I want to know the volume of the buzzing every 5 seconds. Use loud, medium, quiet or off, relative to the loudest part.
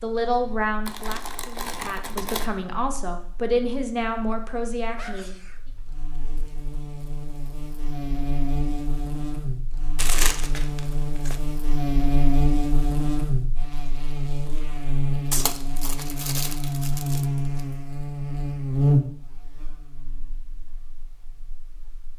quiet, medium, loud, loud, quiet.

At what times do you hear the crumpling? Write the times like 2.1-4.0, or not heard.
0.8-2.5, 9.9-11.4, 15.3-17.6.